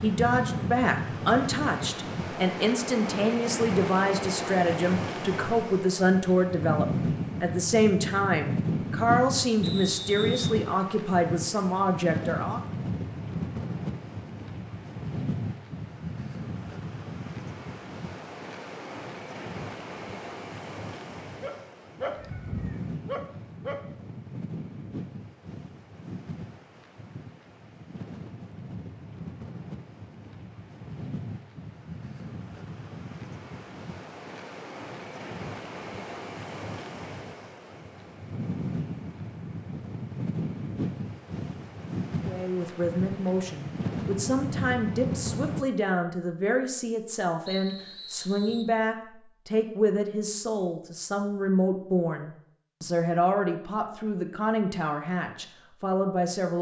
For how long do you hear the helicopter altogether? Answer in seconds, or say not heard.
not heard.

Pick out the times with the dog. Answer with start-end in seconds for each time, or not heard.
21.4-23.8.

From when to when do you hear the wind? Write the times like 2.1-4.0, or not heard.
0.0-45.6.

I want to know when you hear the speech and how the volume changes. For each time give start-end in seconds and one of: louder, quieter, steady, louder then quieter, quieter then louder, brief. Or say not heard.
0.0-12.6 steady
42.2-56.5 steady.